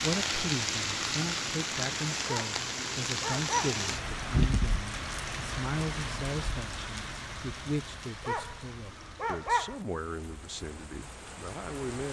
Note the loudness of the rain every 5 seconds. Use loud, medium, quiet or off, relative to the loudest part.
loud, medium, quiet.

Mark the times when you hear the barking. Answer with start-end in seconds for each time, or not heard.
2.2-3.8, 8.2-9.8.